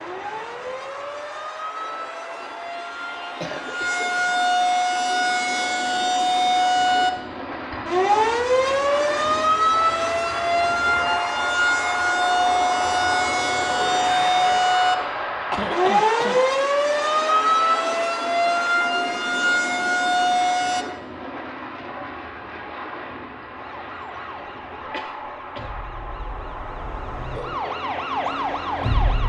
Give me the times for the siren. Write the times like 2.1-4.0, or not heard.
0.0-20.9, 23.5-29.2.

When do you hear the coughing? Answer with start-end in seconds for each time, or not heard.
2.8-4.4, 15.5-16.6, 24.8-25.8.